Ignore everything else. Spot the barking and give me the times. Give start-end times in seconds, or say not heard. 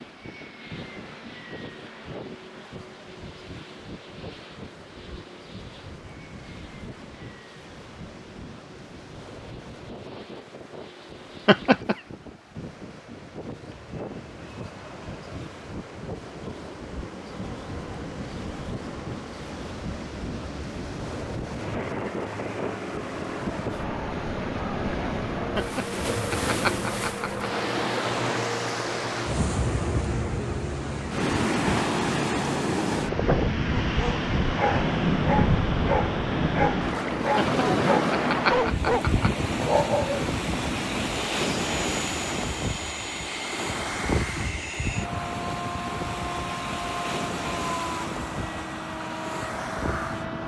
33.9-40.2.